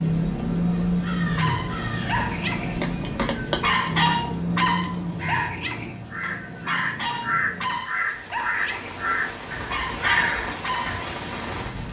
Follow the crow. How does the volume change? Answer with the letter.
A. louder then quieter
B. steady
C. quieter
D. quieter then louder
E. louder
E.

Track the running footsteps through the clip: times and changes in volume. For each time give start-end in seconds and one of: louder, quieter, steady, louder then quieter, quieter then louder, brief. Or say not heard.
not heard.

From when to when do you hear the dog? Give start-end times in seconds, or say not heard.
1.2-11.1.